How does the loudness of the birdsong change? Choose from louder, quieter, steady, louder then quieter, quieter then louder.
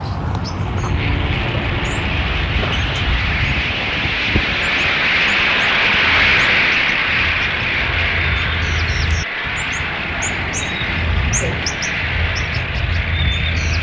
quieter then louder.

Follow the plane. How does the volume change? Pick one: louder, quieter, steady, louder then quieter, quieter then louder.
louder then quieter.